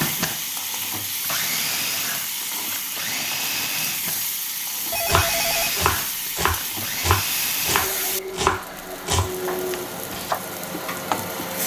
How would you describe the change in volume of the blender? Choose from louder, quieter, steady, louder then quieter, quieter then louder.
steady.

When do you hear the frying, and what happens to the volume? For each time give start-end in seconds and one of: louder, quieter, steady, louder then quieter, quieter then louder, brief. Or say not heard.
0.0-11.6 steady.